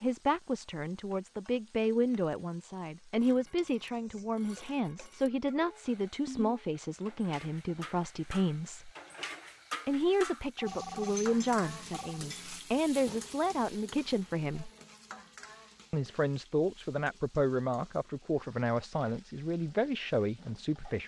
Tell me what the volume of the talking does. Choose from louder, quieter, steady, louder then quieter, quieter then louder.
steady.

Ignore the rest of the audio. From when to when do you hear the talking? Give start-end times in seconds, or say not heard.
0.0-8.9, 9.8-14.7, 15.9-21.0.